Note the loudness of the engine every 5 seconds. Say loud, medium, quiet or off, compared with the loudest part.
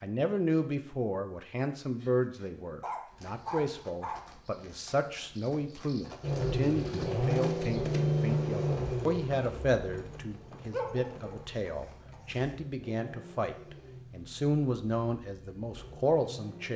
off, loud, quiet, quiet.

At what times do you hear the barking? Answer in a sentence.
The barking can be heard from 1.9 to 4.2 s and from 10.7 to 12.4 s.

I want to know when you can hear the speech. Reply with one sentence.
The speech can be heard from 0.0 to 16.7 s.